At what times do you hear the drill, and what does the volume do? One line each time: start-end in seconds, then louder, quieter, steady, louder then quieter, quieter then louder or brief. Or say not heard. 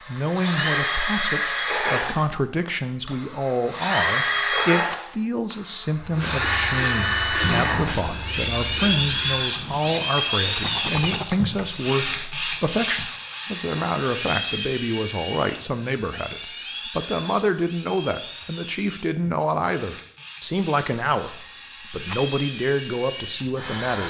0.0-24.0 quieter.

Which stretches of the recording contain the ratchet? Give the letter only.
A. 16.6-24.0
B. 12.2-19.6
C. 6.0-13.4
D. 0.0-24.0
C.